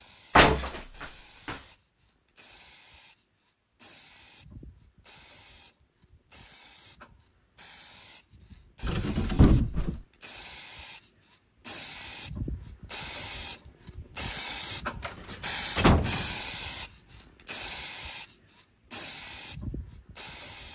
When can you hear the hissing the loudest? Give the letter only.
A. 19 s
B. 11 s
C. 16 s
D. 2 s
C.